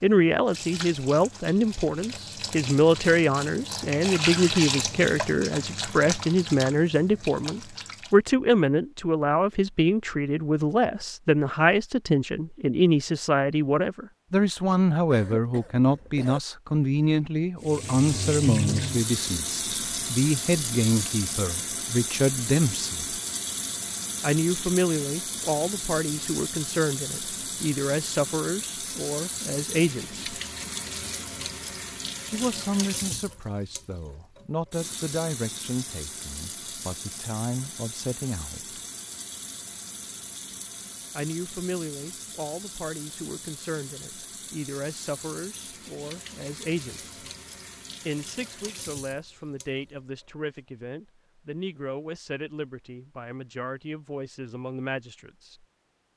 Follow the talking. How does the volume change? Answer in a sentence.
The volume of the talking goes down.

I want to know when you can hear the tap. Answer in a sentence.
You can hear the tap from 0.0 to 8.2 s and from 17.6 to 50.2 s.